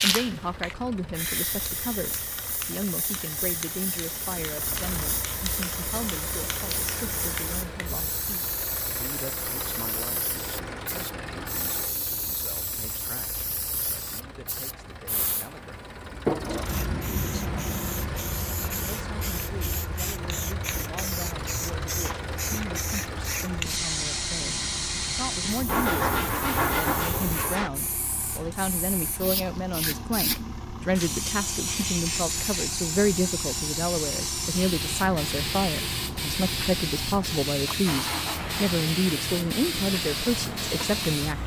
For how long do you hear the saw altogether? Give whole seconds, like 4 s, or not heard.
2 s.